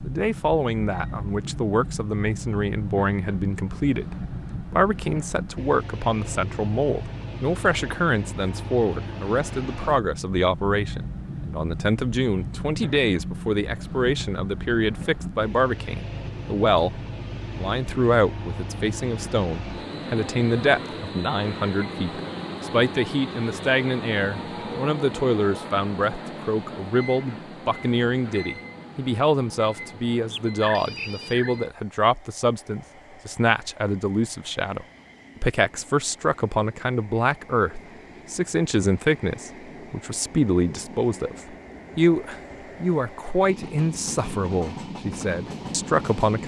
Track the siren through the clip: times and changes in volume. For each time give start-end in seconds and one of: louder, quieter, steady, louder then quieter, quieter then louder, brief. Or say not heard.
not heard.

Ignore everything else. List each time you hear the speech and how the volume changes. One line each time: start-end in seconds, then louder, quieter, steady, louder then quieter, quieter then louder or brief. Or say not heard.
0.0-46.4 steady.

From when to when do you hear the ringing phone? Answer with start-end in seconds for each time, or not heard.
30.3-31.6.